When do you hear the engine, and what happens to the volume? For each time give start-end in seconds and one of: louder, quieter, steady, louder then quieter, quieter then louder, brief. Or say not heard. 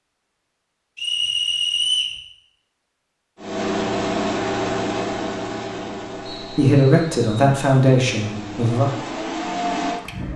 3.4-10.3 quieter then louder.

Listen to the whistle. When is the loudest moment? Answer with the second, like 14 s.
2 s.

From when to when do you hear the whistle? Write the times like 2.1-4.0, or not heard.
0.9-2.2, 6.2-7.5.